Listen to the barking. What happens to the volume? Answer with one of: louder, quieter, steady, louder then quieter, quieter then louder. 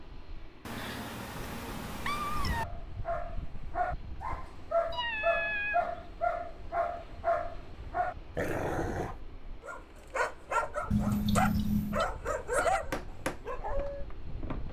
steady.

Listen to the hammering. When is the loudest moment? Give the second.
13 s.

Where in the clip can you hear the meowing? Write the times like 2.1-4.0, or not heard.
0.7-2.6, 4.9-6.0, 10.9-12.1.